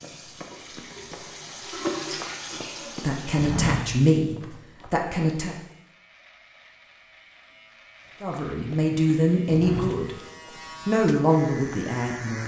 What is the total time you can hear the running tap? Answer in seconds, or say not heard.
4 s.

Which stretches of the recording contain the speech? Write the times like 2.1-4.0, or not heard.
3.0-5.5, 8.2-10.2, 10.8-12.4.